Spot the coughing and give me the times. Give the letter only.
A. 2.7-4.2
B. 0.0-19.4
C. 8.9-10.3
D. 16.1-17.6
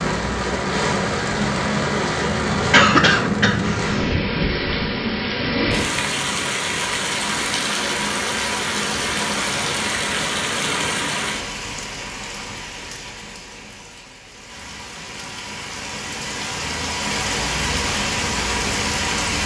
A.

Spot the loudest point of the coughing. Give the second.
3 s.